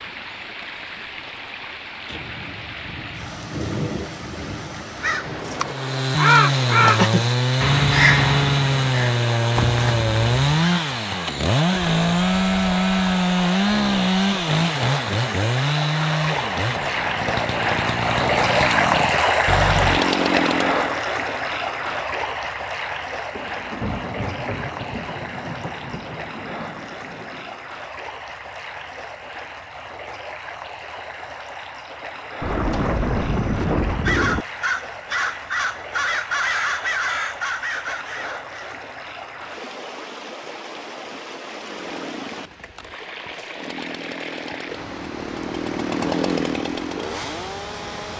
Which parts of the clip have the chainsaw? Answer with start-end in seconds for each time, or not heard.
5.7-21.0, 41.4-48.1.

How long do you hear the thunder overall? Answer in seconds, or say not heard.
10 s.